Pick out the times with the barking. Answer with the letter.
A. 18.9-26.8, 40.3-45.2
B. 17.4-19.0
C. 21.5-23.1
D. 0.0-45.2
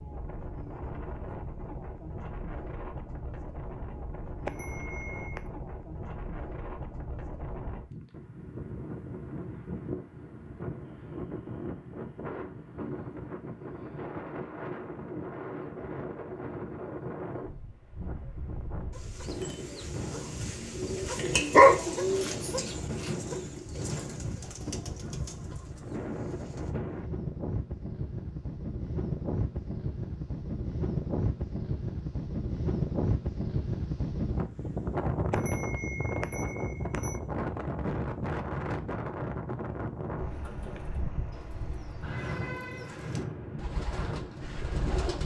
C.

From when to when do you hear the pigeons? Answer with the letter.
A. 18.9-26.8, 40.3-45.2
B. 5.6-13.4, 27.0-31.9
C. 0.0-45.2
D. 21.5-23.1
A.